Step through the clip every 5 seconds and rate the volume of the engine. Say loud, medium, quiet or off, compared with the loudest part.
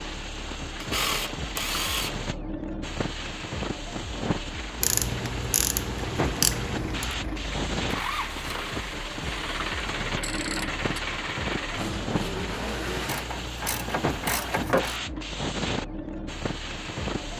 off, loud, loud, off.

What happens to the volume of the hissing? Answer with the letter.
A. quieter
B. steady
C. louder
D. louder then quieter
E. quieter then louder
B.